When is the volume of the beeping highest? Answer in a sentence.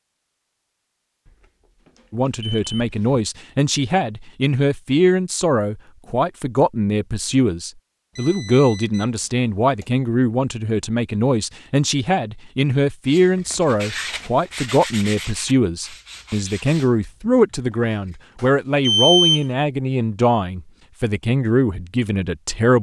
The loudest moment of the beeping is at 19 seconds.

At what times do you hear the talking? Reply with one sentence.
The talking can be heard from 2.1 to 22.7 s.